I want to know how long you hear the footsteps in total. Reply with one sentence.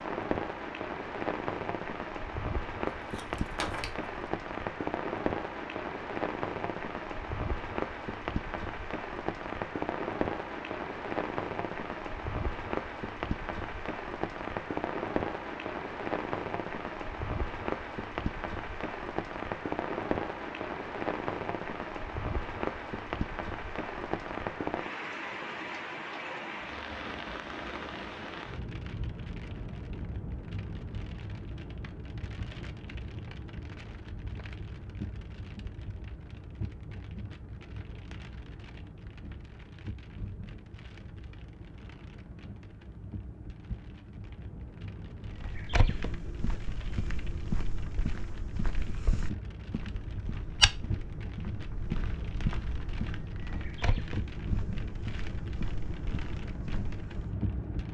You can hear the footsteps for 12 seconds altogether.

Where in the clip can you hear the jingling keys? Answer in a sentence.
You can hear the jingling keys from 3.0 to 4.1 s.